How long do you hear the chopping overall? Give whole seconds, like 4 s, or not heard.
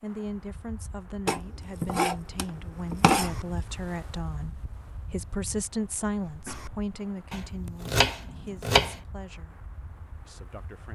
4 s.